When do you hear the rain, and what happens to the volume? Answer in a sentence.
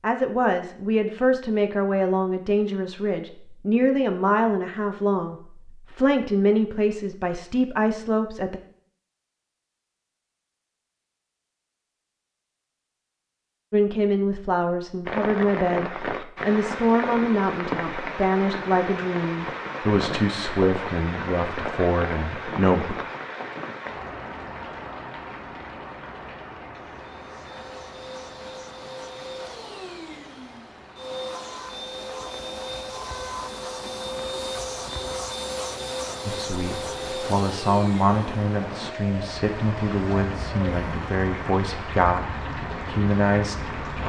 The rain can be heard from 15.1 to 44.0 s, getting quieter then louder.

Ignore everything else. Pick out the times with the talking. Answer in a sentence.
The talking can be heard from 0.0 to 8.6 s, from 13.7 to 22.9 s and from 36.2 to 44.0 s.